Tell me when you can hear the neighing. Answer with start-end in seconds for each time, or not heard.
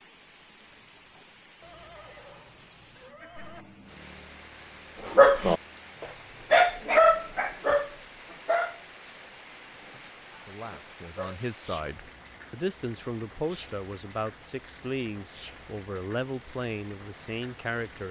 1.6-3.6.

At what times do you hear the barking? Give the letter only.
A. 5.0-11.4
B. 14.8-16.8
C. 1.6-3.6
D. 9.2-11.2
A.